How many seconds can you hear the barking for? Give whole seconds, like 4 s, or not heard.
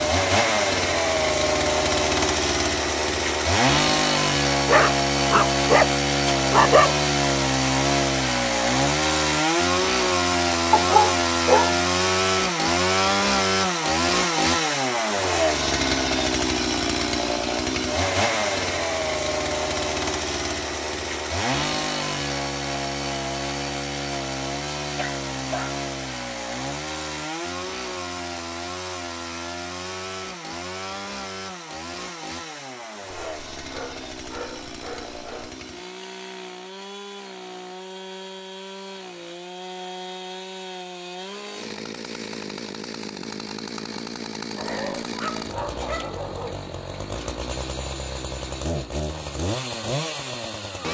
9 s.